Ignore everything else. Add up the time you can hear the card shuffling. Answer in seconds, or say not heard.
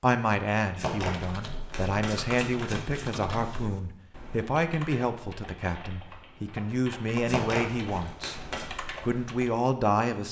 4 s.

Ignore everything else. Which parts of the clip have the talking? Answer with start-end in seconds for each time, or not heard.
0.0-8.3, 9.0-10.2.